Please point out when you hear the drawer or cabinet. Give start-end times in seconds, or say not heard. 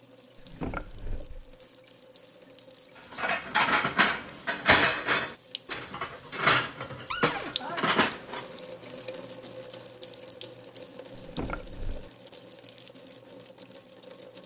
0.3-1.5, 7.1-7.5, 11.2-12.1.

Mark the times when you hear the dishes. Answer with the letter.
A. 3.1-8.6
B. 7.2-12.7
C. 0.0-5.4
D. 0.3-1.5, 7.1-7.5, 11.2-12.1
A.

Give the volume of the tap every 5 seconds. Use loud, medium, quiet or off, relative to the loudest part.
medium, loud, loud.